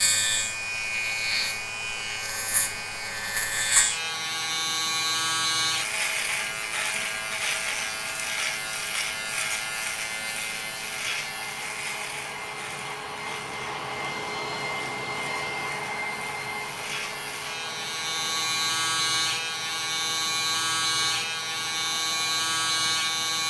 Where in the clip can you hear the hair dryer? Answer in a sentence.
The hair dryer can be heard from 0.1 to 23.4 s.